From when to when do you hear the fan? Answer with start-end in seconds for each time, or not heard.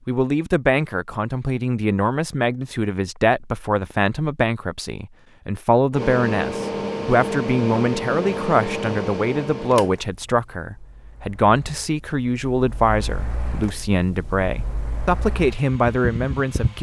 5.9-16.7.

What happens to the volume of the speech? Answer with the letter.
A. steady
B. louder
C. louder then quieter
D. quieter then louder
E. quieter
A.